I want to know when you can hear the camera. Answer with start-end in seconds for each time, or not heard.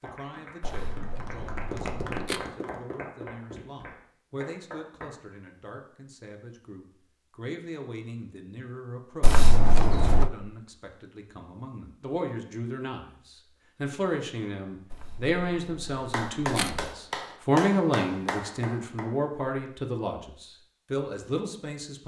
0.6-2.4, 9.2-10.3, 14.9-16.9.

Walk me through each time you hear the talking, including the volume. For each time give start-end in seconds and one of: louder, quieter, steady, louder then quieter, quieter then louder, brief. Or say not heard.
0.0-22.0 louder.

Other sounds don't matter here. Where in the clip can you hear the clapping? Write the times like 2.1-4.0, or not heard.
0.0-5.3, 15.9-19.1.